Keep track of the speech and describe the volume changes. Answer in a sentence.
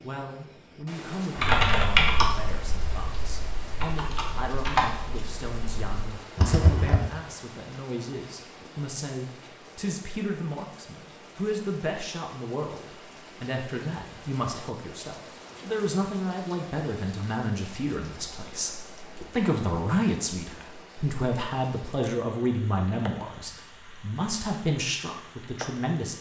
The volume of the speech goes up.